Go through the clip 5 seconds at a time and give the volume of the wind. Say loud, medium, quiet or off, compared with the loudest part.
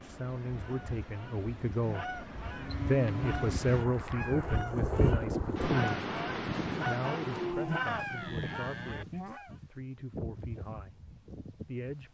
medium, loud, medium.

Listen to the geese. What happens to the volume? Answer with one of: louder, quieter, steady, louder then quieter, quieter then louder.
louder.